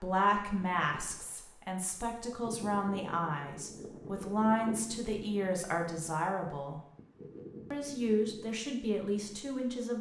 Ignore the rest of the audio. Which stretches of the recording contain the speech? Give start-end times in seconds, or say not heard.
0.0-6.8, 7.7-9.9.